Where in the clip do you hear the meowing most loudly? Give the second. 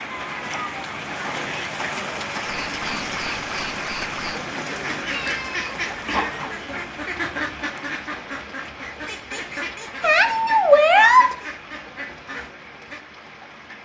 11 s.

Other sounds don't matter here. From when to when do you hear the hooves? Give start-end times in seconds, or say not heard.
not heard.